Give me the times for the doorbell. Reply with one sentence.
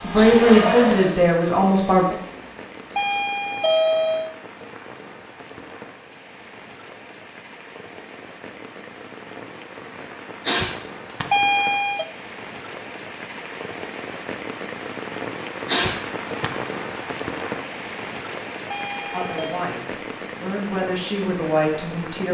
The doorbell can be heard from 2.9 to 4.3 s, from 11.1 to 12.1 s and from 18.6 to 19.6 s.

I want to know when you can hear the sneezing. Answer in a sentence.
The sneezing can be heard from 0.1 to 0.9 s, from 10.4 to 11.2 s and from 15.7 to 16.5 s.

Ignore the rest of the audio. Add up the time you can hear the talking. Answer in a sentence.
You can hear the talking for 5 seconds altogether.